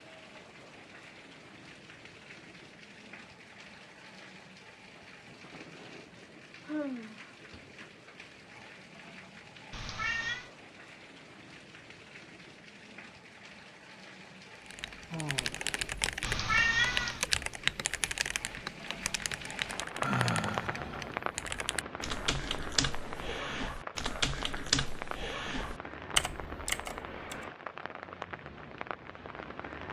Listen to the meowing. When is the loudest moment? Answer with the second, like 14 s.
17 s.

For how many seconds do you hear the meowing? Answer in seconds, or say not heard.
2 s.